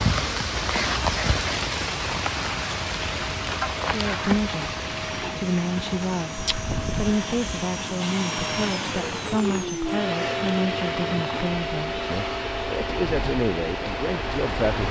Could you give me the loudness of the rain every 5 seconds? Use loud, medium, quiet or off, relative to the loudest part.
loud, medium, medium.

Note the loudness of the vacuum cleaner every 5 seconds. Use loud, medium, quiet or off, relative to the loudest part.
medium, loud, loud.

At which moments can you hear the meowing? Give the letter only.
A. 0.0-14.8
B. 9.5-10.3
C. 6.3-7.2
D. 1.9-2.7
C.